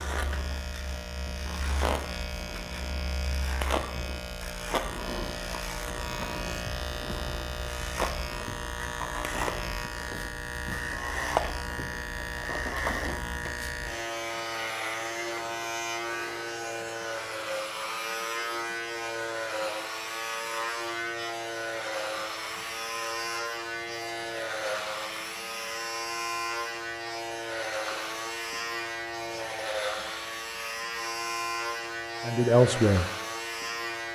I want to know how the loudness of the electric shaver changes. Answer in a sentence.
The volume of the electric shaver stays about the same.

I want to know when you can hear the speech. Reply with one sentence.
You can hear the speech from 32.2 to 33.1 s.